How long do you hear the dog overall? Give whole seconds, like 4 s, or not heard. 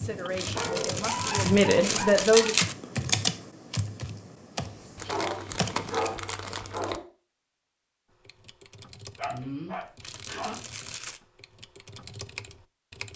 6 s.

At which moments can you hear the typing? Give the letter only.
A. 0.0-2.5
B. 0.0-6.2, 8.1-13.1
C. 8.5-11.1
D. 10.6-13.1
B.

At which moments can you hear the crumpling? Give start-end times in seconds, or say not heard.
0.3-2.8, 5.0-7.0, 10.0-11.2.